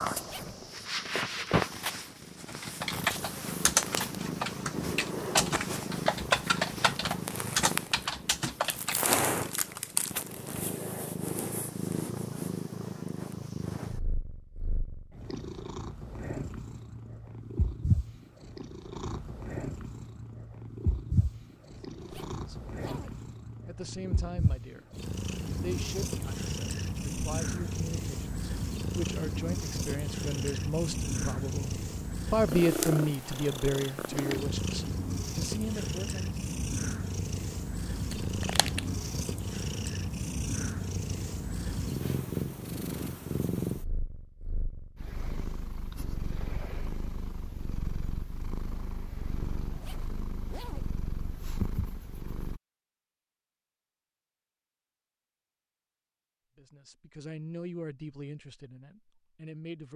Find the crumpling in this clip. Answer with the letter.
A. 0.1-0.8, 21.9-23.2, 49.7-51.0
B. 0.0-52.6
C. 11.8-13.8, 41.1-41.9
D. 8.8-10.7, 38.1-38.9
D.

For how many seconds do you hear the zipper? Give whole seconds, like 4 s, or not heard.
3 s.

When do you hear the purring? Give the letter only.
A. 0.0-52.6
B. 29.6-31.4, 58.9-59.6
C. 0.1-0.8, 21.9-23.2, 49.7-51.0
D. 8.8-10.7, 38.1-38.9
A.